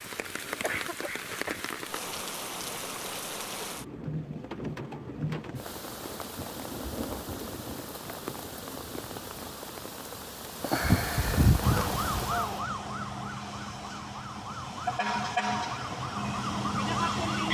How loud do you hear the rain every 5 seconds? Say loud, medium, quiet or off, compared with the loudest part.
medium, medium, loud, off.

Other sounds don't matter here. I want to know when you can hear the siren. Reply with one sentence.
You can hear the siren from 11.6 to 17.4 s.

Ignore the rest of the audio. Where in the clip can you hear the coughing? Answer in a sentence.
You can hear the coughing from 0.6 to 1.6 s.